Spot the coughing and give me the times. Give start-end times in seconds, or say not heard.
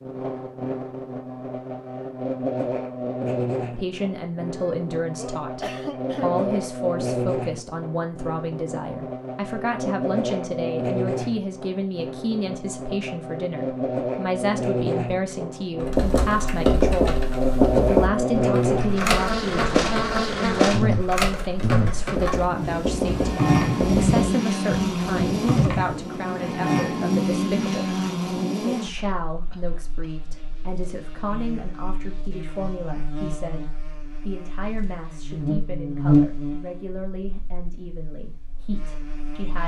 4.5-6.5, 28.9-30.3.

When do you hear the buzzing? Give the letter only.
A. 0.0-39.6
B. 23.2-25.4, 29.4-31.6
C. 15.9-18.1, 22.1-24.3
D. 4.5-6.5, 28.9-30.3
A.